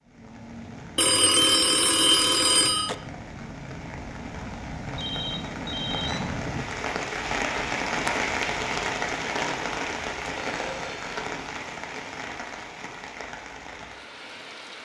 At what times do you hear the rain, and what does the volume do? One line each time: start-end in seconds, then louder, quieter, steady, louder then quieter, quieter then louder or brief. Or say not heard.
0.0-14.8 louder then quieter.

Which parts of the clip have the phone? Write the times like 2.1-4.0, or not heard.
0.9-3.0, 5.0-6.2, 10.2-10.9.